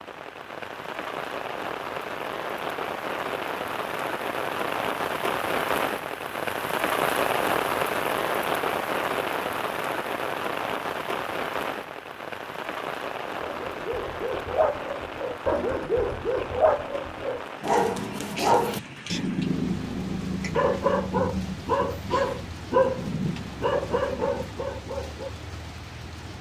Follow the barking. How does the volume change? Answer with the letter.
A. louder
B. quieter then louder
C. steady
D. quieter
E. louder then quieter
C.